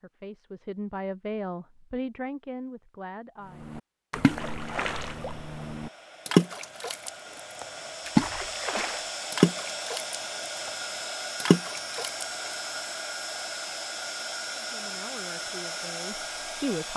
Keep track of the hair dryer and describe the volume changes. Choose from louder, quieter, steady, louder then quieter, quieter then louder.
louder.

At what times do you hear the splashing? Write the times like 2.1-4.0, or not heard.
3.6-10.7, 11.4-12.2.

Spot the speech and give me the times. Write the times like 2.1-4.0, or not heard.
0.0-3.6, 14.6-16.9.